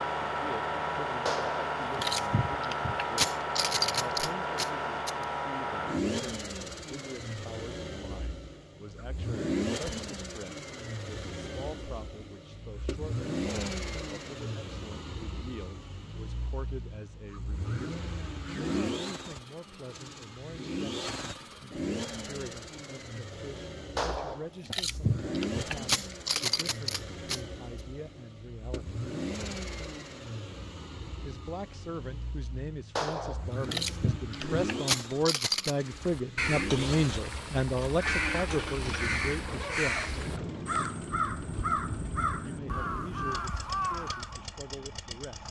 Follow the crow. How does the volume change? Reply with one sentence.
The volume of the crow stays about the same.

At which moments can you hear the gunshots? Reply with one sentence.
You can hear the gunshots from 1.2 to 5.2 s, from 23.9 to 27.4 s and from 33.0 to 35.8 s.